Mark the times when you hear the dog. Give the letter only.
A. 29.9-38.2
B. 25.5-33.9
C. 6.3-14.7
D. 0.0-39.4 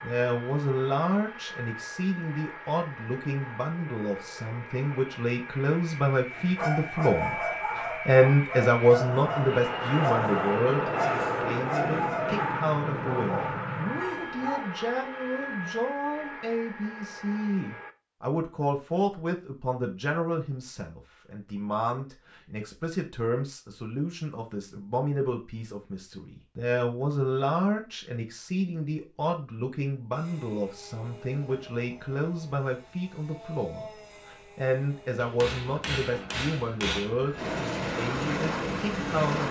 C.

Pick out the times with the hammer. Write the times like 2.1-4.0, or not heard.
35.1-37.1.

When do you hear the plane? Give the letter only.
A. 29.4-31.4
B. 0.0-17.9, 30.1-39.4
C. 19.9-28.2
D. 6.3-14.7
B.